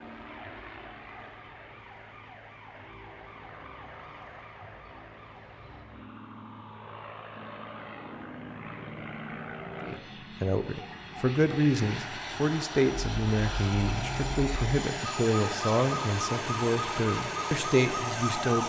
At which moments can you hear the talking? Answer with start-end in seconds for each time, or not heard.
9.8-18.6.